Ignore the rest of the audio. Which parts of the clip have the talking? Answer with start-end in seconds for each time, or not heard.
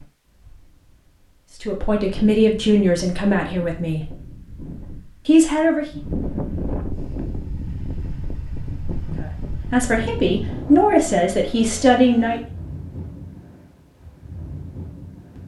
1.6-4.1, 5.2-6.0, 9.2-12.4.